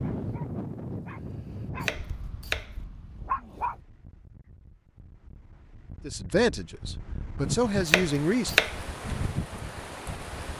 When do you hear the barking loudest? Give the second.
3 s.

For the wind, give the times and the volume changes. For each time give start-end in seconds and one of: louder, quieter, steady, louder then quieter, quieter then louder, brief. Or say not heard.
0.0-10.5 quieter then louder.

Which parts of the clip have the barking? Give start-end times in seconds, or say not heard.
0.0-3.8.